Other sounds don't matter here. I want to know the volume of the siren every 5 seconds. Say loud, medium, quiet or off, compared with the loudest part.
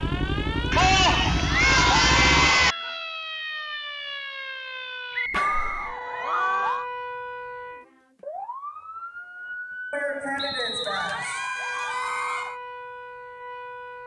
loud, loud, medium.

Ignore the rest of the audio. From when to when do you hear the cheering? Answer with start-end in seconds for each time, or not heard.
0.7-2.8, 5.3-6.8, 9.9-12.6.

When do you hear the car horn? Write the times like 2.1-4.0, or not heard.
not heard.